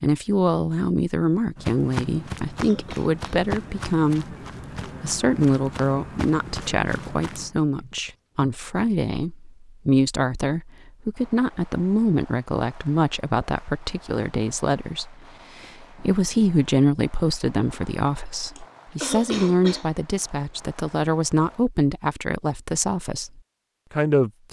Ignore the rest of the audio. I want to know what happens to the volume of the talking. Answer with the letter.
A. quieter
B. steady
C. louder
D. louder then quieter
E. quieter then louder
B.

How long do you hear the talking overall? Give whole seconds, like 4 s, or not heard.
24 s.